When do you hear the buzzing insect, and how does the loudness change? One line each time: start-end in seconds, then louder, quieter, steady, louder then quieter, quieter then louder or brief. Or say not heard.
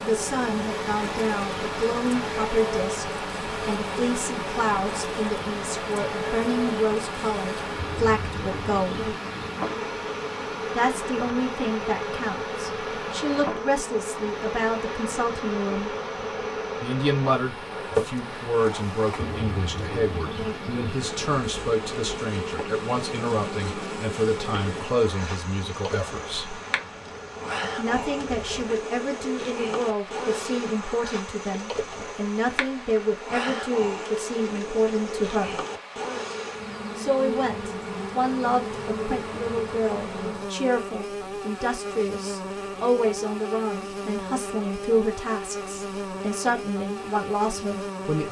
0.0-48.2 steady.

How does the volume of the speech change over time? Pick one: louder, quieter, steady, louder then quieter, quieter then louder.
steady.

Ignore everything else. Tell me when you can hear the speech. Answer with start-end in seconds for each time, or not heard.
0.0-3.0, 3.6-9.2, 10.7-15.9, 16.8-26.6, 27.8-35.6, 37.0-48.2.